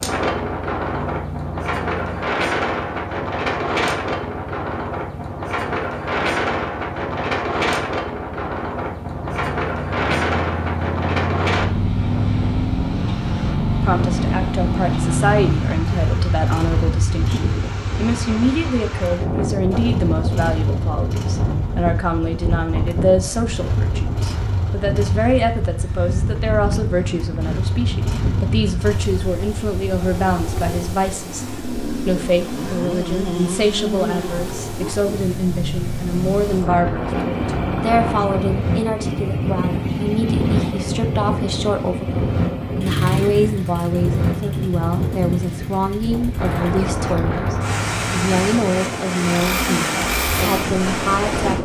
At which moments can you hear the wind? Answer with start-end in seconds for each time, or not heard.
0.0-51.6.